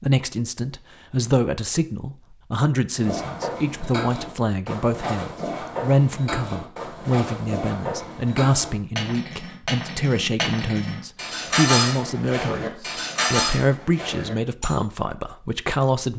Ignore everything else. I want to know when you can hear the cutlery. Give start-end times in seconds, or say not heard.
3.0-14.8.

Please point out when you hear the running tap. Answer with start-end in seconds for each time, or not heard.
not heard.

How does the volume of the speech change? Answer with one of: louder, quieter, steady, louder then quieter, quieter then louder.
steady.